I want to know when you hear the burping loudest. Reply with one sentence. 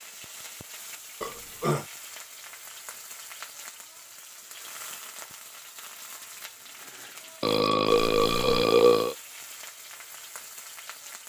The volume of the burping peaks at 9 seconds.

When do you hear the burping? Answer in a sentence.
The burping can be heard from 1.2 to 1.9 s and from 7.4 to 9.2 s.